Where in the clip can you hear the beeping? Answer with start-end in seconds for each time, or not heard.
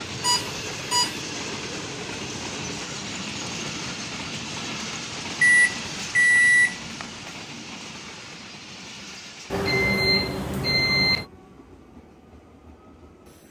0.2-1.1, 5.4-7.0, 9.5-11.2.